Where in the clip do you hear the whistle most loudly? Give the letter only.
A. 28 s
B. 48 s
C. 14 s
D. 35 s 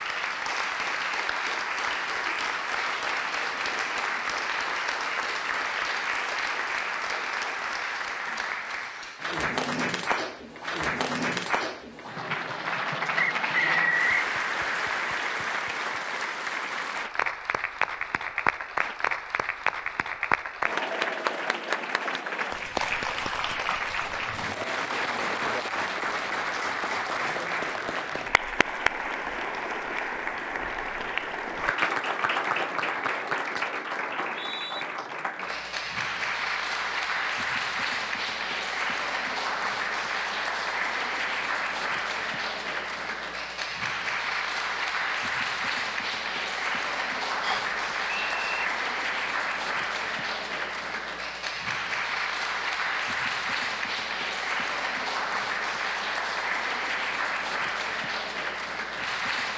C.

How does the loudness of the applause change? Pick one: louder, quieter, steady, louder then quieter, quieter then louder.
steady.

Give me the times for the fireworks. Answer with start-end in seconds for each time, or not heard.
not heard.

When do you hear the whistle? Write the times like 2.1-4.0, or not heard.
13.2-14.1, 34.1-34.9, 47.4-48.6.